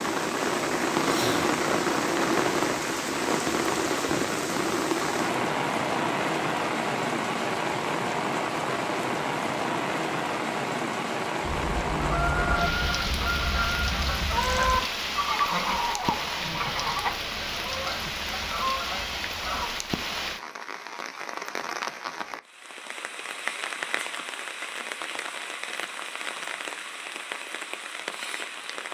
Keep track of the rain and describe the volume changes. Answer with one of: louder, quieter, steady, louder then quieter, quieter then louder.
quieter.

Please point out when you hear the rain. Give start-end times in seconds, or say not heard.
0.0-28.8.